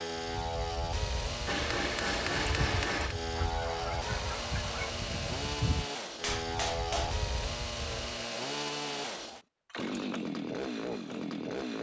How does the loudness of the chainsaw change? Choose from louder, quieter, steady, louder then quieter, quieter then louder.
steady.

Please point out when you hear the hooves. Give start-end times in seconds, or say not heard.
0.1-8.2.